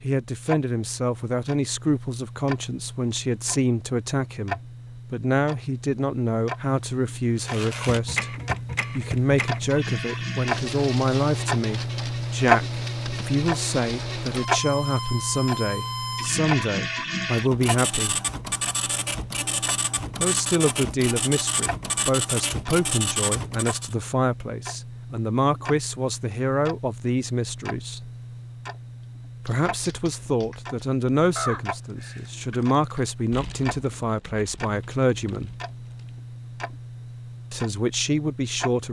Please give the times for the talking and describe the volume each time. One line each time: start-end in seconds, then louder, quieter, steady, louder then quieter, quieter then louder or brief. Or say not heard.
0.0-8.3 steady
8.9-18.1 steady
20.2-28.1 steady
29.4-35.5 steady
37.5-38.8 brief.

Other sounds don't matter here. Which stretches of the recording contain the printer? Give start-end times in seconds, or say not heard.
7.3-23.9.